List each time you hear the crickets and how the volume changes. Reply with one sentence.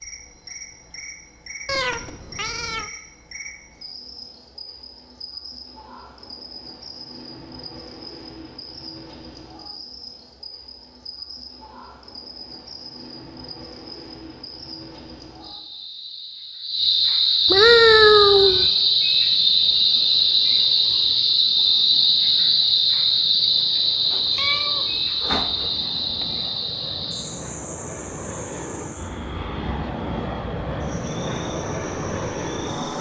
The crickets can be heard from 0.0 to 32.9 s, getting louder then quieter.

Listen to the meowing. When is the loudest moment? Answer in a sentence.
The volume of the meowing peaks at 18 seconds.